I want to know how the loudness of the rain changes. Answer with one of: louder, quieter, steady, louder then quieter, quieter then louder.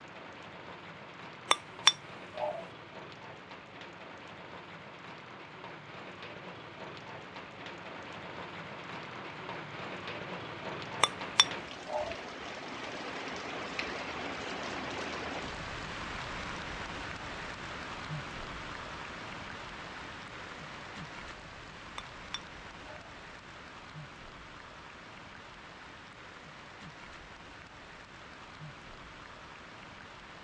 louder then quieter.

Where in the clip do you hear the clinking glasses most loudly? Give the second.
2 s.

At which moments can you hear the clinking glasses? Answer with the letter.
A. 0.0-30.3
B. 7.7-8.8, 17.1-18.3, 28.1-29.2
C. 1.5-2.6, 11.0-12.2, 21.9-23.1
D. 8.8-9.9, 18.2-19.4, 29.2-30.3
C.